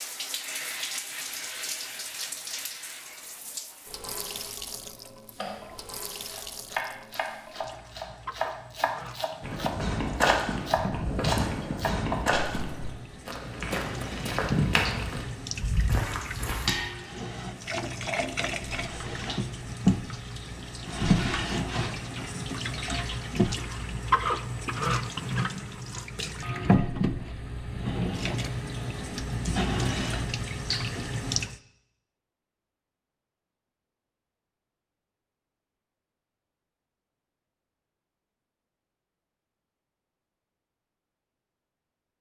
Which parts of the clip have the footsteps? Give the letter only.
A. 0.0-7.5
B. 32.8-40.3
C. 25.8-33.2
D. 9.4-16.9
D.